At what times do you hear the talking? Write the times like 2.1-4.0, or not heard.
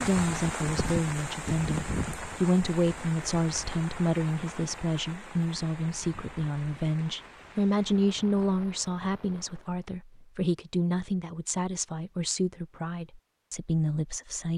0.0-14.5.